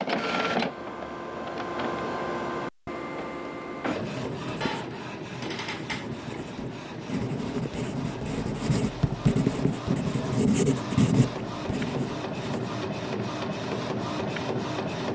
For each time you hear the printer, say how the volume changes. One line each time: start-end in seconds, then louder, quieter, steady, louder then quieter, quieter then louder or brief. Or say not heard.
0.0-15.1 quieter then louder.